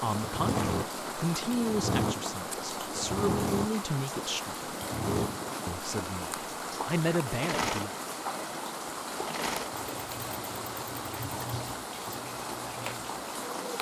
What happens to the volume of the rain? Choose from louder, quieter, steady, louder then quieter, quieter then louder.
steady.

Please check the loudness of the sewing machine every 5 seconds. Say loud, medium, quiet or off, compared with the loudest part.
loud, loud, medium.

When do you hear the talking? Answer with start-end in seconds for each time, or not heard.
0.0-4.8, 5.7-7.9.